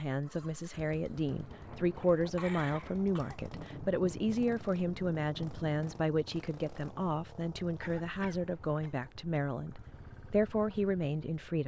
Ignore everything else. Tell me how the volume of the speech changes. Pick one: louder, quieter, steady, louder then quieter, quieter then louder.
steady.